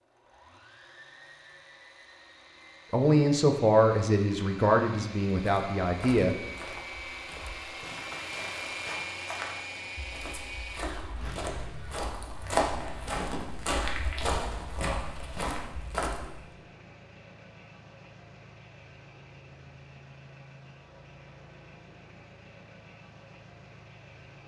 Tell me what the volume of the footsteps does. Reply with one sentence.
The loudness of the footsteps goes up.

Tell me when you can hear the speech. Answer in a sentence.
The speech can be heard from 2.9 to 6.3 s.